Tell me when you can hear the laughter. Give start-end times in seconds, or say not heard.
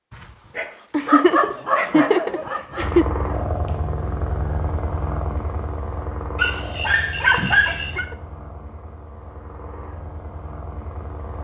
0.9-3.0, 7.2-8.2.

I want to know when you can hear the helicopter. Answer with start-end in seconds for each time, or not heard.
2.8-11.3.